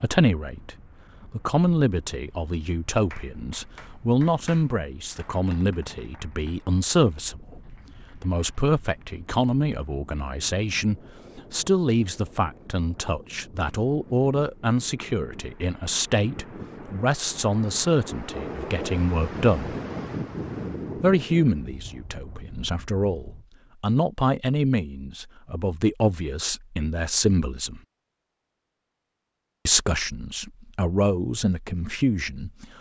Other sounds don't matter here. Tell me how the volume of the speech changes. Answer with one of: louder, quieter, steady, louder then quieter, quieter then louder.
steady.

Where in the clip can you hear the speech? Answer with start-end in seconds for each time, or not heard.
0.0-19.8, 20.9-27.8, 29.6-32.7.